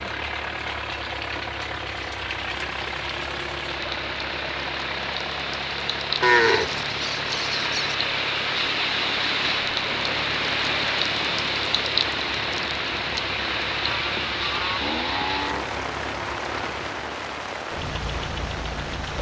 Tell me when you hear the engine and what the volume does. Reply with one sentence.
The engine can be heard from 0.0 to 19.1 s, at a steady volume.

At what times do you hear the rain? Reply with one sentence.
The rain can be heard from 0.0 to 19.1 s.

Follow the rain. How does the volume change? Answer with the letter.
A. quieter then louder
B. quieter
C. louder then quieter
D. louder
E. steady
C.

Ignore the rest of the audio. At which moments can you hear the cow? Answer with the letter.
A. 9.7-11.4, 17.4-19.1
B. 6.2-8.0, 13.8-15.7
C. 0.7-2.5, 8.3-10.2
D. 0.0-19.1
B.